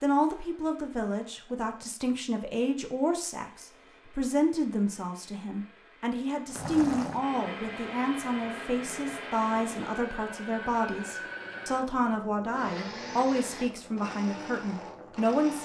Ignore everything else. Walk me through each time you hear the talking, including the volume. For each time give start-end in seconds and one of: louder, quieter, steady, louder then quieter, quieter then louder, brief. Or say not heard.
0.0-15.6 steady.